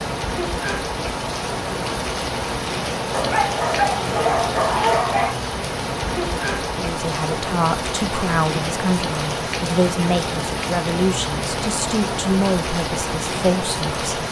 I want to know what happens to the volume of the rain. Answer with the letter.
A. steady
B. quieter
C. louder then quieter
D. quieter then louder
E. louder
A.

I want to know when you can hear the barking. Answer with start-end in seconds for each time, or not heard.
3.1-5.3.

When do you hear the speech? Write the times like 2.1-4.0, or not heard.
6.8-14.1.